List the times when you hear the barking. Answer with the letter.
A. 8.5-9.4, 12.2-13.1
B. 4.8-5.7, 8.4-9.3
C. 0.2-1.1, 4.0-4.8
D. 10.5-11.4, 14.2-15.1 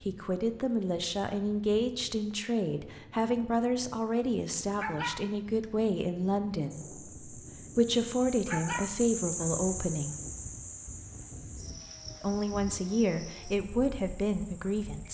B.